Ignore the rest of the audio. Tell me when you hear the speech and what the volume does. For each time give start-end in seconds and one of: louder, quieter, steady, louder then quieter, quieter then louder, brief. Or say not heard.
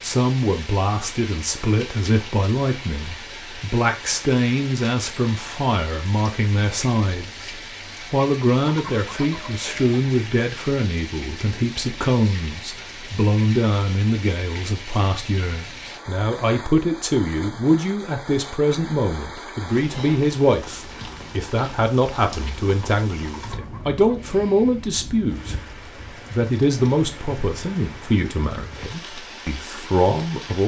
0.0-30.6 steady.